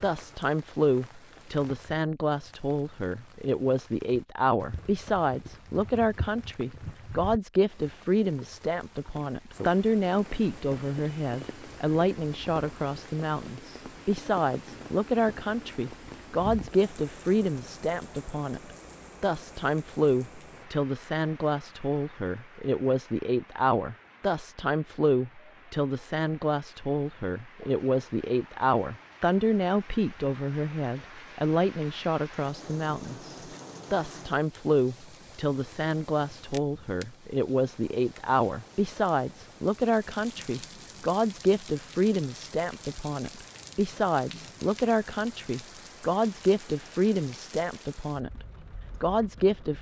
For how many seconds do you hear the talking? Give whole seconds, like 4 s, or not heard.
50 s.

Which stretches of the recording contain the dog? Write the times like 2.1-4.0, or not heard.
not heard.